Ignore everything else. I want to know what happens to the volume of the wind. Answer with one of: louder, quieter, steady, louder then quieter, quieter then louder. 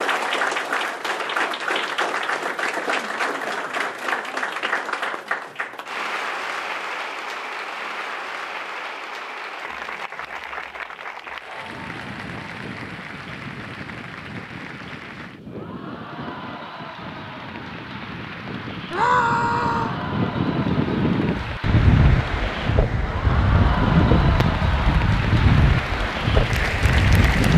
louder.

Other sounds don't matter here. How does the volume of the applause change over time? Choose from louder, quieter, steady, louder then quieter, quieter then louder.
quieter then louder.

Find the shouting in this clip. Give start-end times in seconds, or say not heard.
18.9-19.9.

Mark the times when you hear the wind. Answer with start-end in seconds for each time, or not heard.
11.6-27.5.